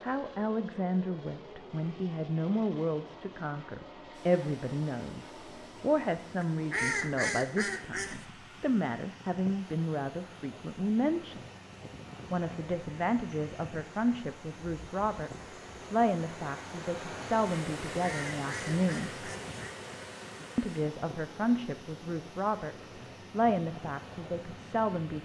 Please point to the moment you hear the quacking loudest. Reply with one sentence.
The volume of the quacking peaks at 7 seconds.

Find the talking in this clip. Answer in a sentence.
You can hear the talking from 0.0 to 11.4 s, from 12.3 to 19.3 s and from 20.6 to 25.2 s.